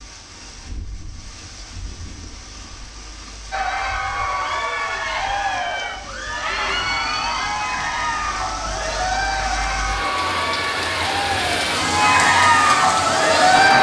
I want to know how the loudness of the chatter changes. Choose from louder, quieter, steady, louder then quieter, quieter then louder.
louder.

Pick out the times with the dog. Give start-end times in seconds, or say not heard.
not heard.